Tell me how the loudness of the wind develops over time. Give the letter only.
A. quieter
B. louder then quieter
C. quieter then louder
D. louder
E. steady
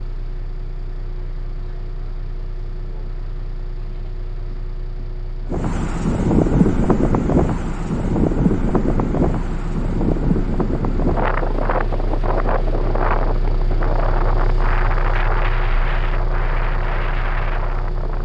A.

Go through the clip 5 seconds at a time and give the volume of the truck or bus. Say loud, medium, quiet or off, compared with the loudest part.
medium, medium, loud, loud.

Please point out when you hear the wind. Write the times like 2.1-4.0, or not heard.
5.5-18.1.